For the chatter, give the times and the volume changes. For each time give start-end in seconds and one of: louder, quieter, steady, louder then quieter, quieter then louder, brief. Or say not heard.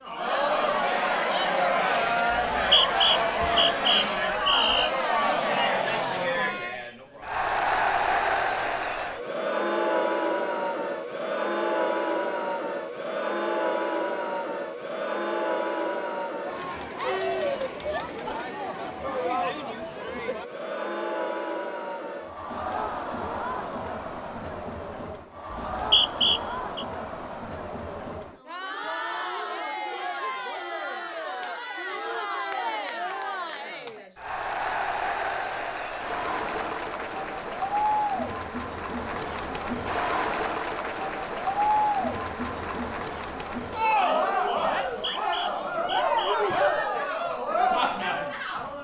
0.0-48.7 quieter then louder.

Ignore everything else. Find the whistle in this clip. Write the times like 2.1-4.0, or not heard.
2.3-4.9, 25.5-26.9, 44.9-46.4.